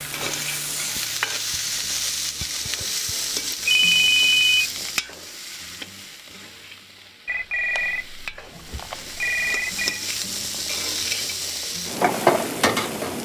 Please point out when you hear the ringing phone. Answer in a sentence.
The ringing phone can be heard from 3.6 to 4.7 s and from 7.2 to 10.0 s.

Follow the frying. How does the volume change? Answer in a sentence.
The volume of the frying goes down, then up.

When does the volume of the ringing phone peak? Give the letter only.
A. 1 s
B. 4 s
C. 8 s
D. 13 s
B.